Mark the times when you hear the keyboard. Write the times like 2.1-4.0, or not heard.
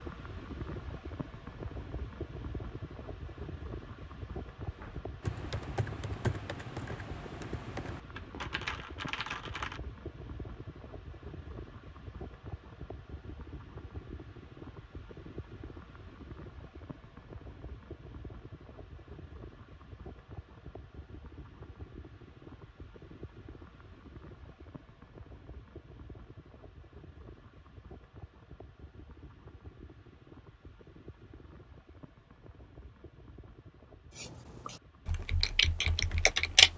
4.7-9.8, 34.1-36.7.